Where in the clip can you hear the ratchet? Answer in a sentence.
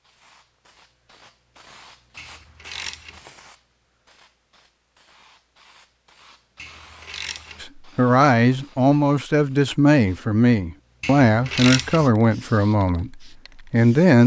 The ratchet can be heard from 2.1 to 3.2 s, from 6.5 to 7.7 s and from 11.0 to 12.1 s.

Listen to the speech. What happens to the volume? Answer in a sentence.
The volume of the speech goes down.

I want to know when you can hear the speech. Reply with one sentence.
You can hear the speech from 7.6 to 14.2 s.